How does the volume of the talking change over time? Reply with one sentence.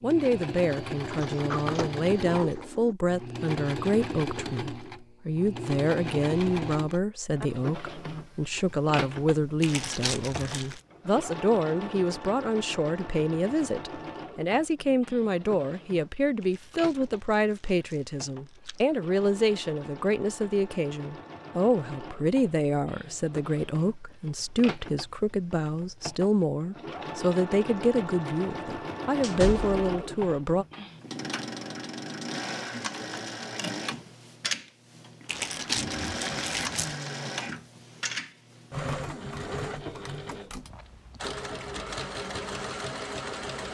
The volume of the talking stays about the same.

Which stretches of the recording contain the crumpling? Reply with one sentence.
The crumpling can be heard from 9.6 to 10.8 s, from 16.4 to 18.9 s and from 35.2 to 37.0 s.